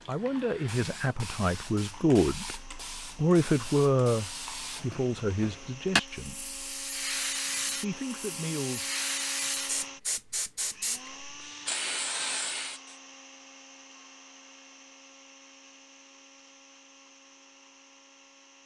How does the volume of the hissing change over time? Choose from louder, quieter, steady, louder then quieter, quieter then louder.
louder.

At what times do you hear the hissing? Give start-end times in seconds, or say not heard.
0.0-12.9.